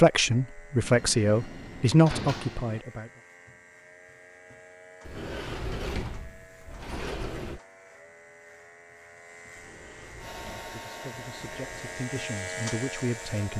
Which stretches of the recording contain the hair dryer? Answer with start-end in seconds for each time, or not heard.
10.2-13.5.